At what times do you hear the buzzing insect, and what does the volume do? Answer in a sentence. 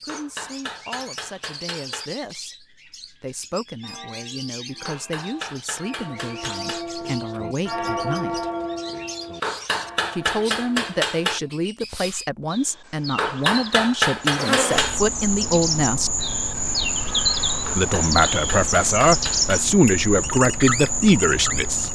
The buzzing insect can be heard from 14.3 to 21.8 s, at a steady volume.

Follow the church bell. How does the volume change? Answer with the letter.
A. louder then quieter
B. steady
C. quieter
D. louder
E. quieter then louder
A.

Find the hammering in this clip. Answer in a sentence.
The hammering can be heard from 0.1 to 2.1 s, from 4.8 to 6.8 s, from 9.4 to 11.4 s, from 13.2 to 15.0 s and from 17.6 to 19.6 s.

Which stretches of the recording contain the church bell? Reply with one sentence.
You can hear the church bell from 3.8 to 11.6 s.